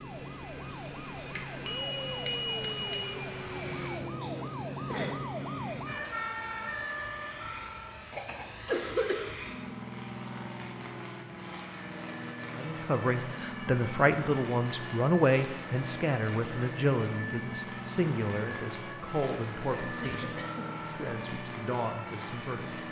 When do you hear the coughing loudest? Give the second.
9 s.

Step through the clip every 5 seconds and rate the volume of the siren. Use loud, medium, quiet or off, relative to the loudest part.
loud, loud, medium, medium, medium.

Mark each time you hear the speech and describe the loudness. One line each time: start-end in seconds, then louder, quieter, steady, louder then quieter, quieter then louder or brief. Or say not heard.
12.6-22.8 quieter.